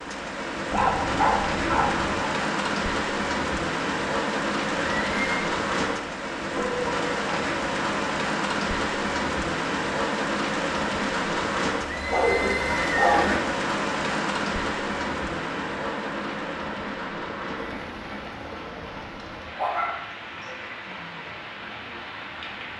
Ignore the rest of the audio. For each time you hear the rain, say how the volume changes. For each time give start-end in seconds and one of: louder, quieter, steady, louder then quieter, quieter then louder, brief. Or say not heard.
0.0-22.7 quieter.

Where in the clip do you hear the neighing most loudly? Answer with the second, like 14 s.
13 s.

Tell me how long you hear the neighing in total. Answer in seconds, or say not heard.
2 s.